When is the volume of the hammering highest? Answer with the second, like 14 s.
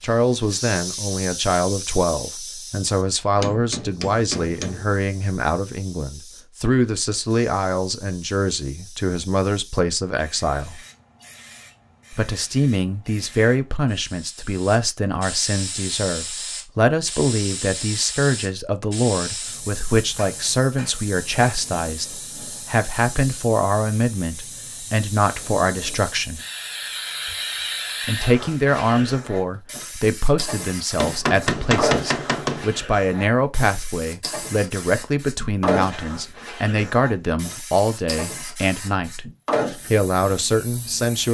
32 s.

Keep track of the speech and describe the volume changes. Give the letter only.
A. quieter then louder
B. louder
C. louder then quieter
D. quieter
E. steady
E.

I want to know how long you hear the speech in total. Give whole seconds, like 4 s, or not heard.
38 s.